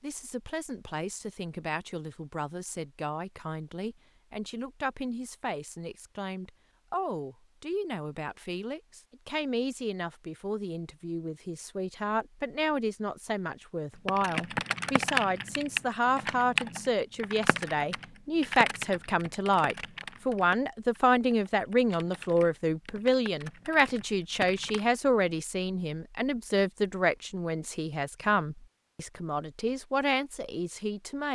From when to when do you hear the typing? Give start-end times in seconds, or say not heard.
13.9-24.9.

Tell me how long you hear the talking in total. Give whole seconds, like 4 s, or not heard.
31 s.